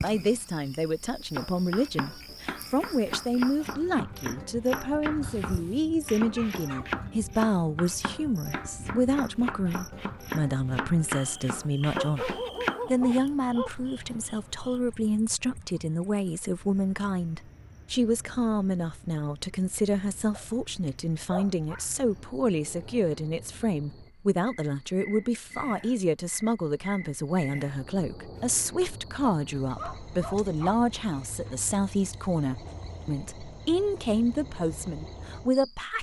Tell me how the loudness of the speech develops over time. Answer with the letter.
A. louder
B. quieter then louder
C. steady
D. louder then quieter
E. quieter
C.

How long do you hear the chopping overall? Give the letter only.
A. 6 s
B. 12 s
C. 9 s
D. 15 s
B.